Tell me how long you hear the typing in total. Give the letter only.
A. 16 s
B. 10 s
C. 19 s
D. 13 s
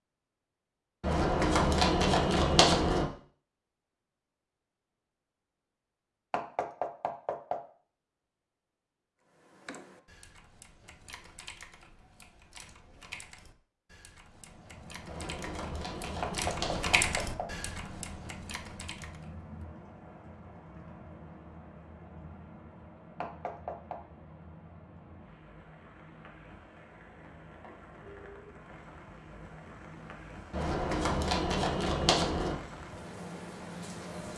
B.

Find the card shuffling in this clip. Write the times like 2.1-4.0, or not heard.
1.0-3.0, 15.1-17.1, 30.5-32.5.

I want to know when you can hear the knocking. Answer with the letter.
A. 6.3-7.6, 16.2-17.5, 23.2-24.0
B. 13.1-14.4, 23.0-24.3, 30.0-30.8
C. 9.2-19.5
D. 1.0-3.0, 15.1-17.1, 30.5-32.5
A.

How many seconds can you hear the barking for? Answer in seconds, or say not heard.
not heard.